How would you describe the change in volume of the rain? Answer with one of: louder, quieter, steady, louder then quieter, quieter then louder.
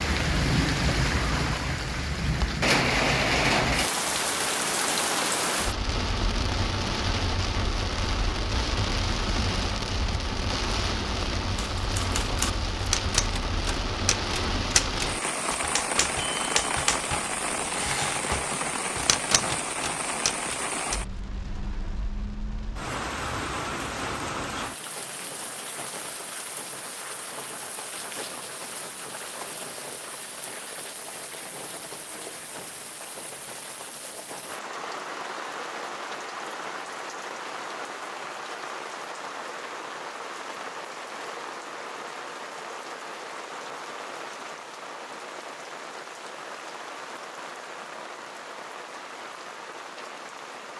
quieter.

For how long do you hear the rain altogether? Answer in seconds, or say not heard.
51 s.